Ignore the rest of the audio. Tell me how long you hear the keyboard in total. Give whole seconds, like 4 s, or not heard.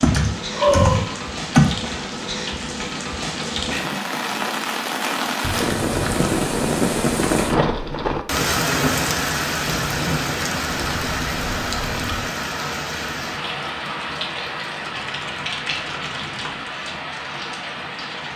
7 s.